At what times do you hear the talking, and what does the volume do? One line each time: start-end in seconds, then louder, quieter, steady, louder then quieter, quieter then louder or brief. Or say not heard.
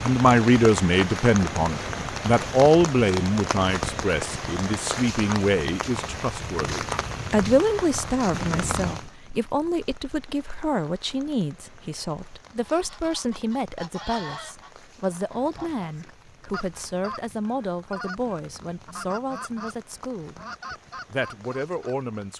0.0-22.3 quieter.